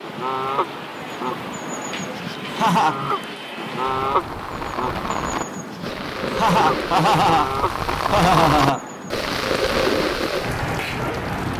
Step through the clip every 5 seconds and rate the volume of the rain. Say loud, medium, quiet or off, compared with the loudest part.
medium, loud, loud.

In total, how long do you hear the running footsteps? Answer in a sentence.
You can't hear the running footsteps here.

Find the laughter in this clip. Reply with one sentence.
The laughter can be heard from 2.5 to 3.0 s and from 6.2 to 8.8 s.